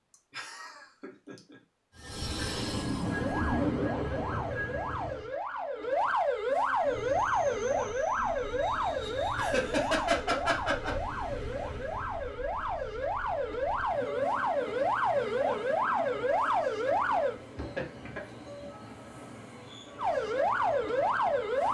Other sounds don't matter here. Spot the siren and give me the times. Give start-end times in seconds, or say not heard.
3.0-17.4, 19.9-21.6.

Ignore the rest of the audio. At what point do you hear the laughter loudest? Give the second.
10 s.